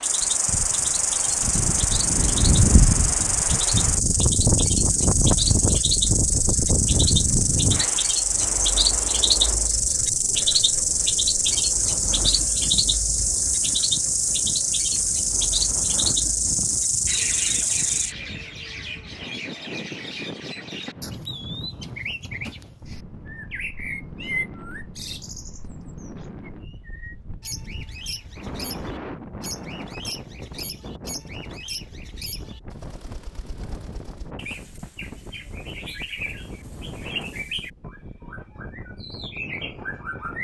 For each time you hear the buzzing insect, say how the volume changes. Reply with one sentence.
You can hear the buzzing insect from 0.0 to 18.1 s, at a steady volume.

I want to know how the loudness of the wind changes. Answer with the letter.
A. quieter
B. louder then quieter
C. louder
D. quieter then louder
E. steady
A.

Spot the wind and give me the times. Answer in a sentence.
You can hear the wind from 0.0 to 40.3 s.